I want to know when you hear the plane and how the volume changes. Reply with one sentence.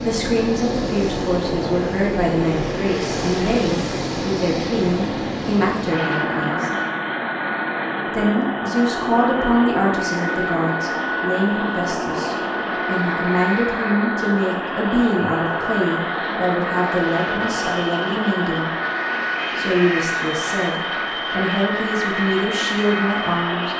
You can hear the plane from 0.0 to 23.7 s, at a steady volume.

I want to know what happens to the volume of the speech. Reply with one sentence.
The loudness of the speech stays about the same.